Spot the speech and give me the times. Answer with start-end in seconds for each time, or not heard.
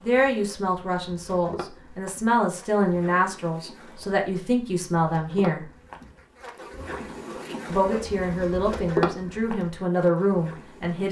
0.0-5.7, 7.7-11.0.